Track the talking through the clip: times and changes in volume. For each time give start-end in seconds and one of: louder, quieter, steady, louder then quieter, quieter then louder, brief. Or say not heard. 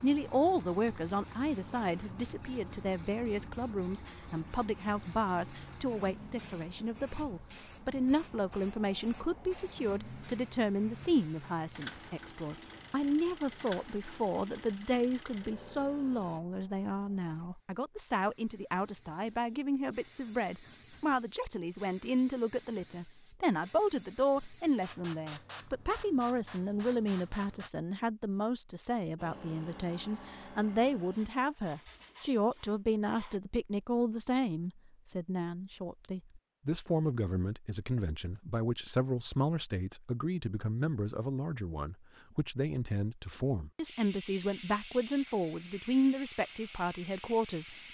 0.0-47.9 steady.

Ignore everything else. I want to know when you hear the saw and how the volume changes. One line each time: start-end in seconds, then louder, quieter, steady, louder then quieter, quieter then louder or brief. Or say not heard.
not heard.